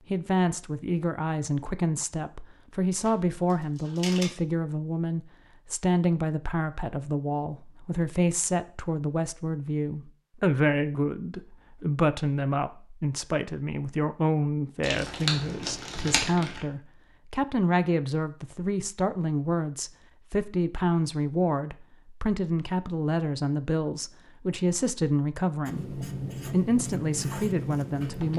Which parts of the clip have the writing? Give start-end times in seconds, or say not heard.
25.6-28.3.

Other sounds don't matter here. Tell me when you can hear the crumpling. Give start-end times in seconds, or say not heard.
3.0-4.3, 14.8-16.6.